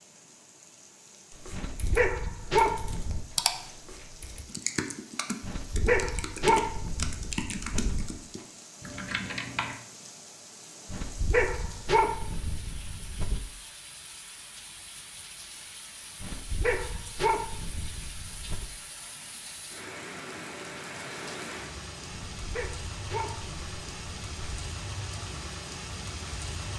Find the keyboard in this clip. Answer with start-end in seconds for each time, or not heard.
1.3-9.8.